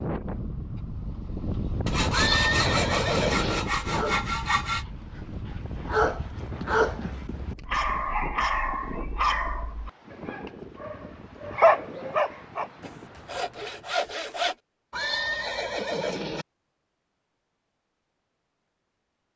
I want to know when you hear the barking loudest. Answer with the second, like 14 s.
12 s.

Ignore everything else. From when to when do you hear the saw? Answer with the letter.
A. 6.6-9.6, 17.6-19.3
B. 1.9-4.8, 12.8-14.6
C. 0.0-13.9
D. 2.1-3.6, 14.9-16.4
B.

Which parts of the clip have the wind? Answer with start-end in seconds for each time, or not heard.
0.0-13.9.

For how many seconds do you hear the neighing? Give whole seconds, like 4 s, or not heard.
3 s.